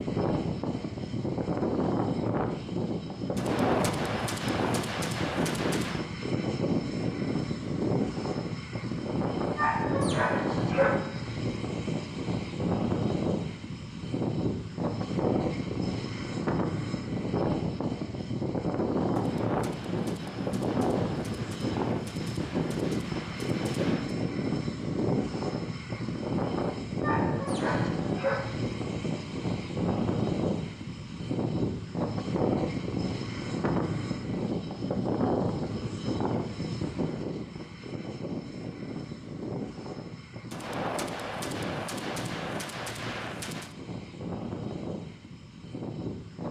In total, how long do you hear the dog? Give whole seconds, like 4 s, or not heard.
3 s.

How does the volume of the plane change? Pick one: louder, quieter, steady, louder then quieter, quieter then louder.
quieter.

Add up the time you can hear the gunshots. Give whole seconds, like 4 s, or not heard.
11 s.